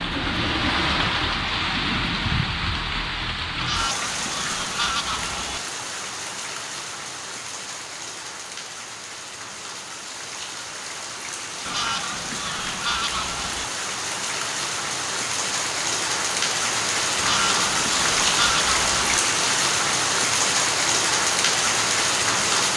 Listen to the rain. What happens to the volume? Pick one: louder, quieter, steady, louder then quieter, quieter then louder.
quieter then louder.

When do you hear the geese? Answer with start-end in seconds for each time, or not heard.
3.5-5.6, 11.7-13.7, 17.1-19.2.